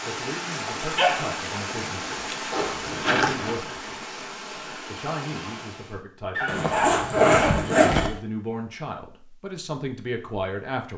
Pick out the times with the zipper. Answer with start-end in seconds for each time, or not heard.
2.5-3.6, 6.5-8.1.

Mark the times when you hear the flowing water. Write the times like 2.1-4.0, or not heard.
0.0-6.0.